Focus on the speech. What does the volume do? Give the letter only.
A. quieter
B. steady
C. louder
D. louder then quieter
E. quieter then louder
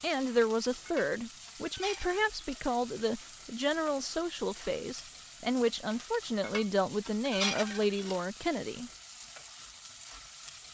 B.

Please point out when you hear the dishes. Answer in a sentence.
You can hear the dishes from 0.8 to 2.6 s and from 6.4 to 8.2 s.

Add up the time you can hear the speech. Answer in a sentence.
The speech can be heard for 9 seconds in total.